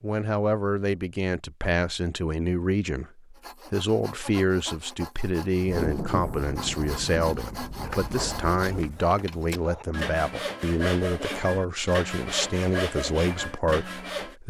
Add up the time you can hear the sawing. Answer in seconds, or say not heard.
11 s.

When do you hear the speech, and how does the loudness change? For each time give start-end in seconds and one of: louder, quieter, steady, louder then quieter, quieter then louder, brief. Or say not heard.
0.0-14.4 steady.